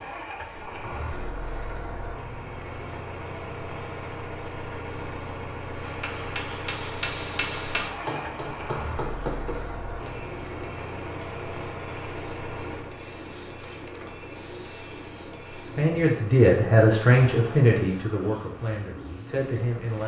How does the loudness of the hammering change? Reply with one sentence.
The volume of the hammering goes down.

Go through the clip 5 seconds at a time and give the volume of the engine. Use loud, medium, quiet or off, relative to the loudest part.
loud, loud, loud, medium.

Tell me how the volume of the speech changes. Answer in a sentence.
The loudness of the speech goes down.